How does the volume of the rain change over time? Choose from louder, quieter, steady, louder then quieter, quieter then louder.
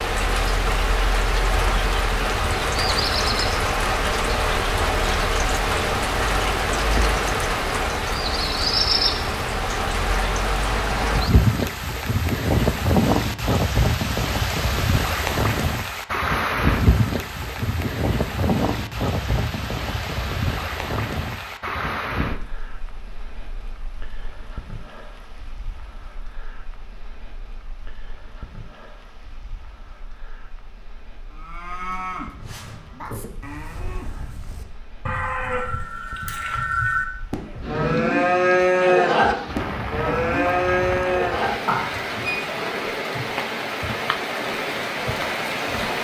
quieter then louder.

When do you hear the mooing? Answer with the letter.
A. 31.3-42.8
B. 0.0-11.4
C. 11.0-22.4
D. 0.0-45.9
A.